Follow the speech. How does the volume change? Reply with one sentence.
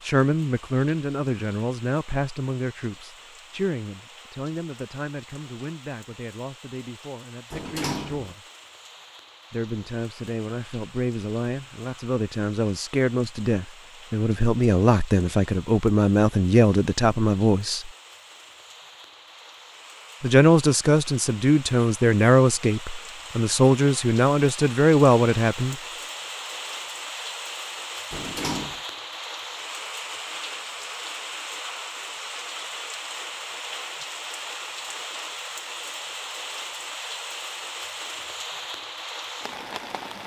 The volume of the speech goes down, then up.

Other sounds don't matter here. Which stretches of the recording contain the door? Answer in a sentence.
The door can be heard from 7.5 to 8.3 s and from 28.1 to 28.8 s.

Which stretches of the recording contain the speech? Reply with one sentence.
You can hear the speech from 0.0 to 8.4 s, from 9.5 to 17.9 s and from 20.2 to 25.8 s.